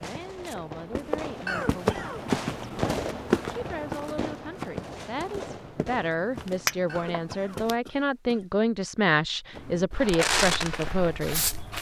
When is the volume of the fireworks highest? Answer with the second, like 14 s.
10 s.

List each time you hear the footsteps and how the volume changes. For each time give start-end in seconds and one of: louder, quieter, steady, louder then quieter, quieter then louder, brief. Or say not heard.
0.0-7.8 louder then quieter
9.5-11.7 brief.